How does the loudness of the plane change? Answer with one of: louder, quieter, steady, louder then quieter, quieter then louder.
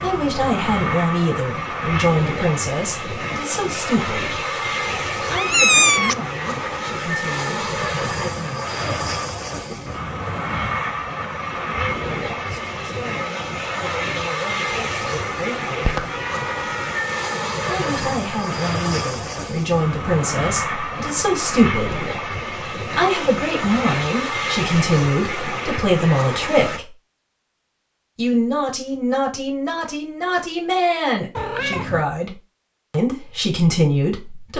steady.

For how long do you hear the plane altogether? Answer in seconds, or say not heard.
27 s.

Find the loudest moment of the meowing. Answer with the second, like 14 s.
6 s.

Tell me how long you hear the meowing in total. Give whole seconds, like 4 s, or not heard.
3 s.